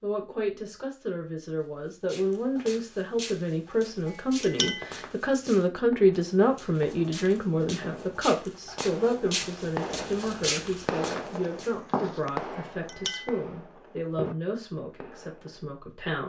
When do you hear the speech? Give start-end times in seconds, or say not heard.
0.0-16.2.